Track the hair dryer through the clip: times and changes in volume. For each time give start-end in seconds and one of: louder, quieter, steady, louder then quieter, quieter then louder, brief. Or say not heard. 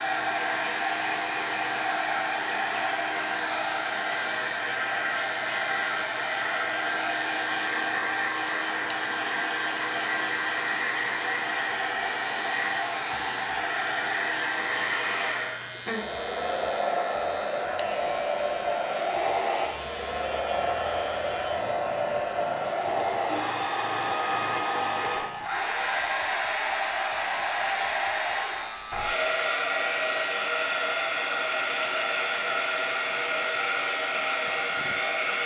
0.0-35.4 steady.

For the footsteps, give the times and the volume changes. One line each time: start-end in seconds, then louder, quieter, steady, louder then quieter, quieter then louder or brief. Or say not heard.
not heard.